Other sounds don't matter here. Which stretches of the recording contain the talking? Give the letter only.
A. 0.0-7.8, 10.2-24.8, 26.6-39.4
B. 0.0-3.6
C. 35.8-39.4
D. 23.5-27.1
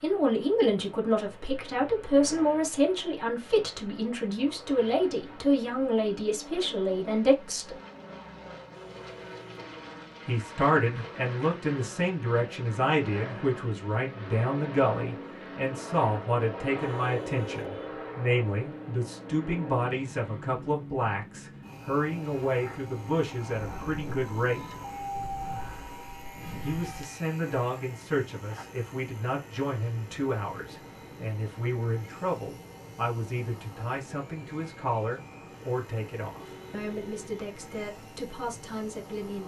A.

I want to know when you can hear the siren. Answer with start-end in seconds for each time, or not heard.
23.5-27.1.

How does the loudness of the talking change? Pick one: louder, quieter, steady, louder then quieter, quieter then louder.
quieter.